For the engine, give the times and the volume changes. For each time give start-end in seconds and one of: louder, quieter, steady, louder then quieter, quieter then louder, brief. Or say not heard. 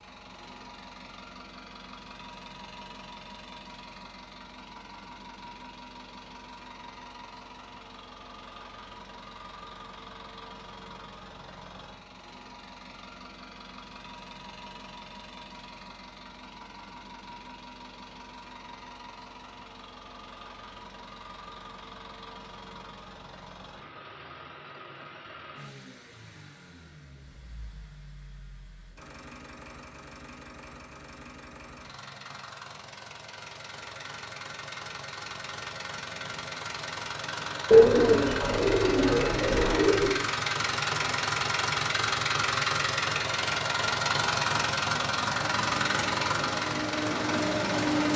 0.0-48.1 louder.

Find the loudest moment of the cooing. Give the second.
38 s.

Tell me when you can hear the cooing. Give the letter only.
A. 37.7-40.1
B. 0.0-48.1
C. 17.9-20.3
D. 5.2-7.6
A.